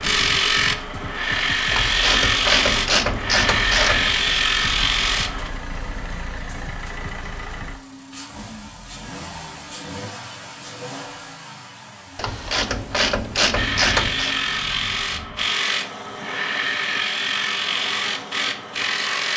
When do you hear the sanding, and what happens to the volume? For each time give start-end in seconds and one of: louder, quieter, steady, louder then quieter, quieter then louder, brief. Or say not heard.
0.0-5.5 steady
13.6-19.3 steady.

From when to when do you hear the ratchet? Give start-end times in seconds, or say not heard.
1.7-4.2, 12.2-14.3.